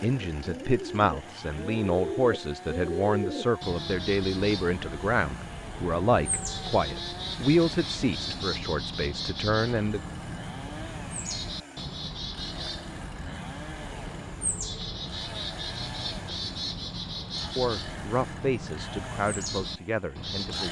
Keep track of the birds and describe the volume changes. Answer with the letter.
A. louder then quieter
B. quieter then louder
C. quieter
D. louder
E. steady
E.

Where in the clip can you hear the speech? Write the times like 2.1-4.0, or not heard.
0.0-10.1, 17.6-20.6.